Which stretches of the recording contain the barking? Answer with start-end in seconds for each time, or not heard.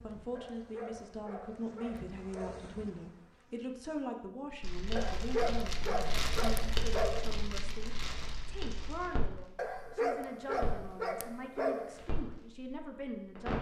0.3-2.8, 5.0-7.3, 9.6-12.1.